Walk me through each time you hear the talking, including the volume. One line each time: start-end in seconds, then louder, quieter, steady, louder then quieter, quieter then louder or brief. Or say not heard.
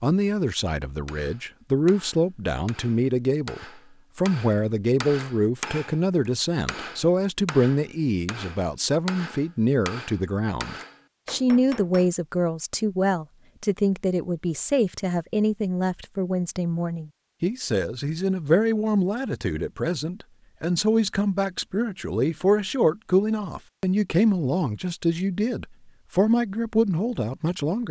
0.0-27.8 steady.